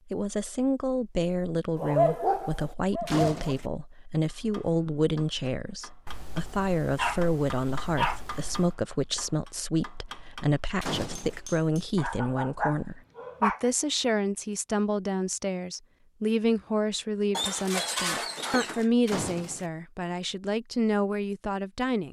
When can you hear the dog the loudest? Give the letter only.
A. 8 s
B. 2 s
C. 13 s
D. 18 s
B.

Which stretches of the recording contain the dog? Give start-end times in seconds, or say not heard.
1.8-3.5, 6.0-8.7, 11.9-13.7, 17.3-18.9.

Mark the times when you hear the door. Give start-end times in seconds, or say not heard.
3.0-3.7, 10.8-11.4, 19.1-19.7.